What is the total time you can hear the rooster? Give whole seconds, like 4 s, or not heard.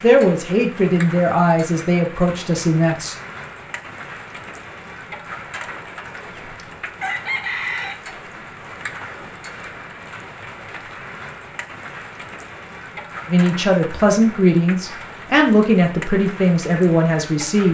2 s.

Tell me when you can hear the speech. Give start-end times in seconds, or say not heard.
0.0-3.1, 13.2-17.6.